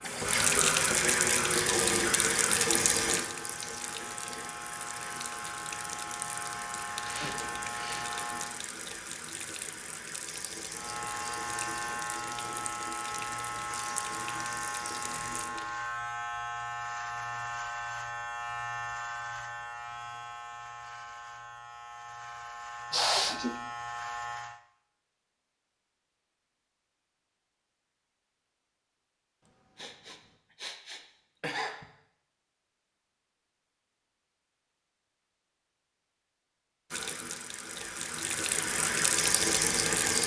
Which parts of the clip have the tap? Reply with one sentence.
The tap can be heard from 0.0 to 15.8 s and from 36.9 to 40.2 s.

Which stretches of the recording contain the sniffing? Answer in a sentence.
The sniffing can be heard from 7.0 to 8.1 s, from 22.9 to 23.6 s and from 29.4 to 31.9 s.